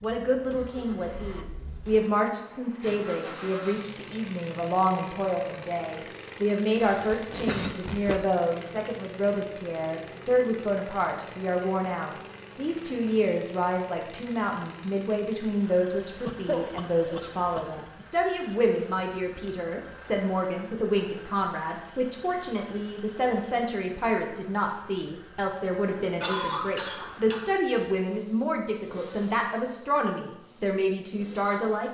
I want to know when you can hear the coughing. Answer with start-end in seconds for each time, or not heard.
6.8-8.2, 16.2-18.1, 26.2-27.6.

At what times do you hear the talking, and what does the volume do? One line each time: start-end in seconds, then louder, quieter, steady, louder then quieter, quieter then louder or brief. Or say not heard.
0.0-31.8 steady.